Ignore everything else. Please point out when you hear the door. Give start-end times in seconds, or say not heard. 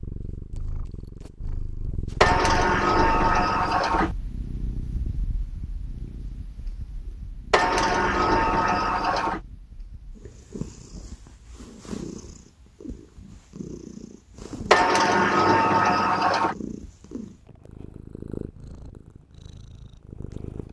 2.2-4.2, 7.5-9.4, 14.7-16.6.